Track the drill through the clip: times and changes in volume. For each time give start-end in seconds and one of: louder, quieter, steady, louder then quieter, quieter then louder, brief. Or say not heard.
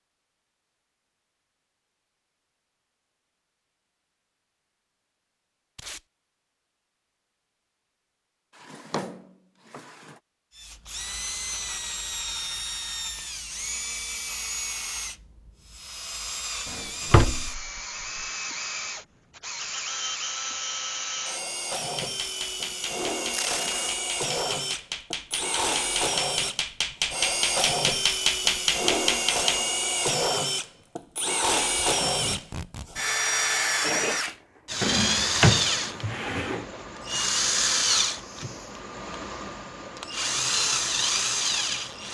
10.6-42.0 louder.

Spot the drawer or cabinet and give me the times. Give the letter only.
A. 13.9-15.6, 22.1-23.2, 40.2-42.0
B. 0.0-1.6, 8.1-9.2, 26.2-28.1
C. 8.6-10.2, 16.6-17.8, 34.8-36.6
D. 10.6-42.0
C.